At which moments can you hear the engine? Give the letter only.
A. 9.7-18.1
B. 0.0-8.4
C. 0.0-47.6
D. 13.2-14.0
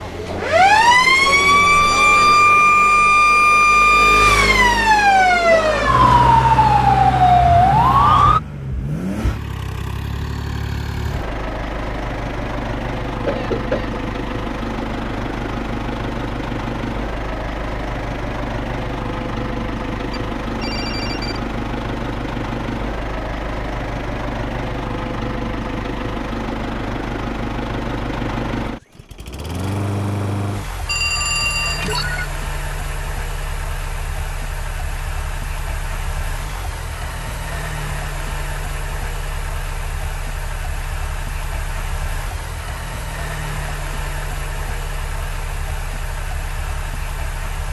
C.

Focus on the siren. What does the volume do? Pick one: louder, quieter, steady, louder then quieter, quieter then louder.
steady.